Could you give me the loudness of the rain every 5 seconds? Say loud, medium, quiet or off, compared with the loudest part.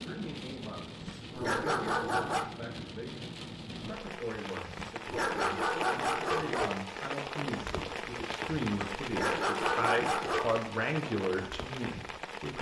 medium, loud, loud.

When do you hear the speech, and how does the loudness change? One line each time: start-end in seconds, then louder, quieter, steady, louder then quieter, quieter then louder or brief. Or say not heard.
0.0-12.5 louder.